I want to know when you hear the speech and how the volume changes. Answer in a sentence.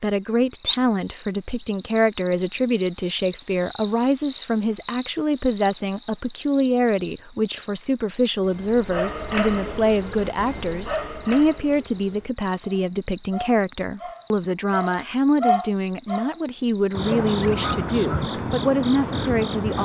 The speech can be heard from 0.0 to 19.7 s, at a steady volume.